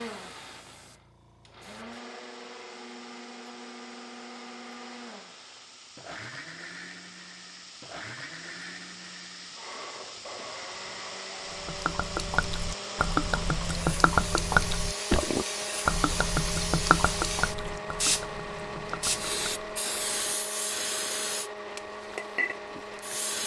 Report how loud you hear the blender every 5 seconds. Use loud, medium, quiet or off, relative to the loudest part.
medium, medium, loud, loud, loud.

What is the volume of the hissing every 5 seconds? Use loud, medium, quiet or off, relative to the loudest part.
quiet, quiet, medium, loud, loud.